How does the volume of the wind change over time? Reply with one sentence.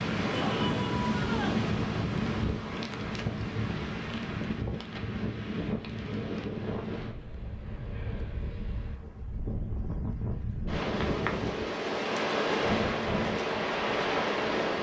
The volume of the wind goes down, then up.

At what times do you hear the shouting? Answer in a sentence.
The shouting can be heard from 0.3 to 1.6 s.